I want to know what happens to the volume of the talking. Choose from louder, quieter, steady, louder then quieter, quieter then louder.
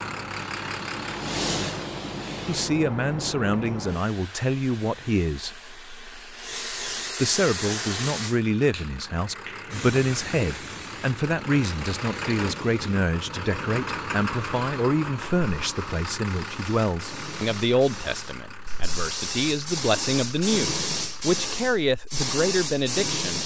steady.